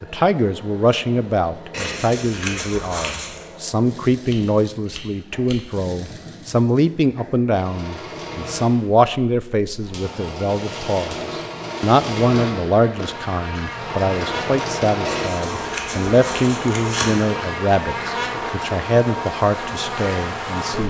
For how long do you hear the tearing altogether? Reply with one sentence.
You can hear the tearing for 4 seconds altogether.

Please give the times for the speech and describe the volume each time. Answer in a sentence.
The speech can be heard from 0.0 to 20.8 s, at a steady volume.